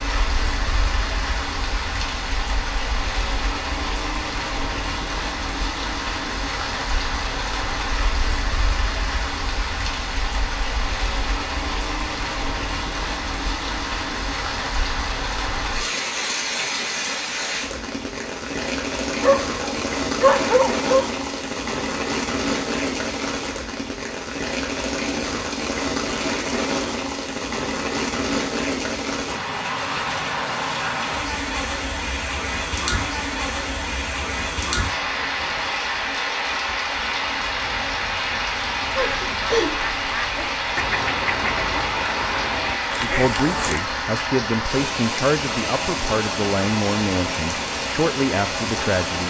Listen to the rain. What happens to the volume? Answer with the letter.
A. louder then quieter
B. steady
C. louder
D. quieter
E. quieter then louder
B.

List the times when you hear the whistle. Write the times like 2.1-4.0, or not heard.
not heard.